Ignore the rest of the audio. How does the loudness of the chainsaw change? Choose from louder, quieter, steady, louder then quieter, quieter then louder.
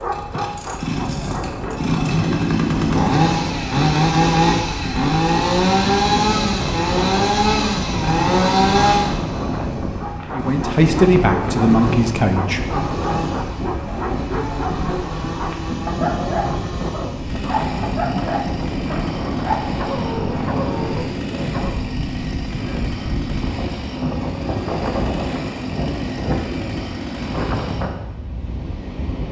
quieter.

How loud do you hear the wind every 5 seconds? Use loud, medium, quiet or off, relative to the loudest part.
medium, loud, loud, loud, loud, loud.